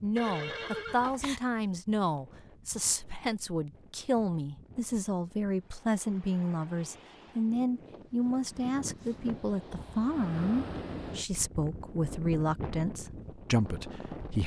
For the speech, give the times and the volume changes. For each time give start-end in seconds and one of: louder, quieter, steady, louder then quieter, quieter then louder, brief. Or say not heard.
0.0-14.4 steady.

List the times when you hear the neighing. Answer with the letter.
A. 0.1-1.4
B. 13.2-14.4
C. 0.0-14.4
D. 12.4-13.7
A.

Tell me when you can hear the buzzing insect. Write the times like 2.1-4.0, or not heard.
not heard.